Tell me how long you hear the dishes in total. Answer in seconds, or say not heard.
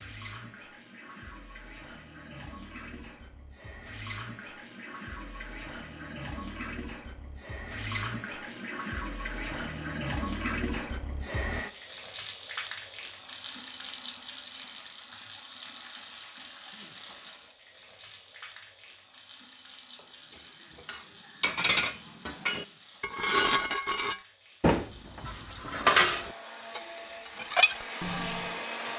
8 s.